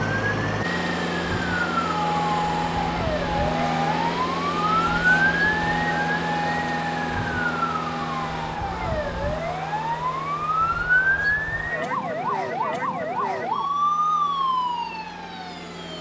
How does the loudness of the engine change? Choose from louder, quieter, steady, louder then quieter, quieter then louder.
quieter.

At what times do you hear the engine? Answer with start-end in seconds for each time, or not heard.
0.0-15.9.